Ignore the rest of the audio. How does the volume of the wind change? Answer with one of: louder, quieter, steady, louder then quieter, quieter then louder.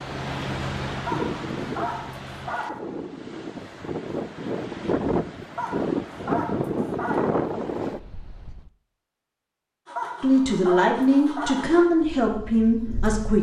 quieter then louder.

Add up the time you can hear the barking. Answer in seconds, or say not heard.
5 s.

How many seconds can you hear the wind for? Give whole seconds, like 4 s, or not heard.
9 s.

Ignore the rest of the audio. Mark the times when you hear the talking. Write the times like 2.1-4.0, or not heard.
10.2-13.3.